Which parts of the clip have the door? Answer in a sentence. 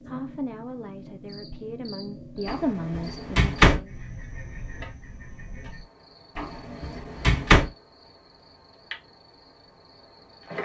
The door can be heard from 2.5 to 3.8 s and from 6.3 to 7.7 s.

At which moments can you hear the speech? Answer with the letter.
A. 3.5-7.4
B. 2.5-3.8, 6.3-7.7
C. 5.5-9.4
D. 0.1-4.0
D.